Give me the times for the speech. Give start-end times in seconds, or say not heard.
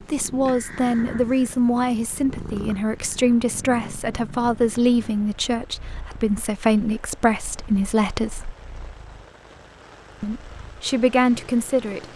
0.0-8.6, 10.2-12.1.